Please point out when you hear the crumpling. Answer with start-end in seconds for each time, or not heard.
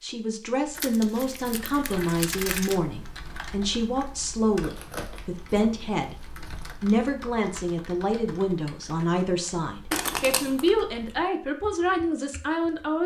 0.8-2.8, 4.6-6.8, 9.9-10.7.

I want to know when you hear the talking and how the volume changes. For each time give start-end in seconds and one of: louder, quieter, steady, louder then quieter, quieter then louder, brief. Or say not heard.
0.0-13.0 steady.